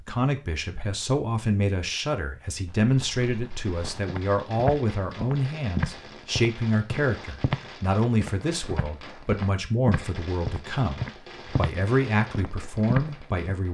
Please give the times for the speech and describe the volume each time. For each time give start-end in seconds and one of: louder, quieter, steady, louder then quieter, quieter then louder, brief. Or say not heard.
0.0-13.6 steady.